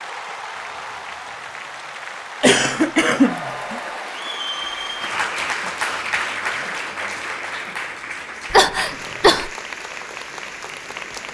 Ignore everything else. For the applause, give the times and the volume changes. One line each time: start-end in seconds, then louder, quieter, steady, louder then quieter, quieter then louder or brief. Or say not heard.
0.0-11.3 louder then quieter.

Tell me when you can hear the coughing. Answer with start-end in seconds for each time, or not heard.
2.4-3.8, 8.5-9.5.